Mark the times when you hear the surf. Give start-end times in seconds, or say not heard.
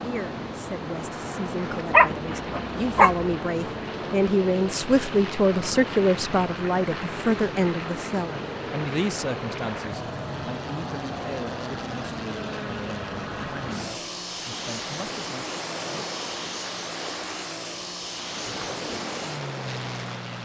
0.0-20.4.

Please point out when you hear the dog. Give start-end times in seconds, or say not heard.
1.9-3.2.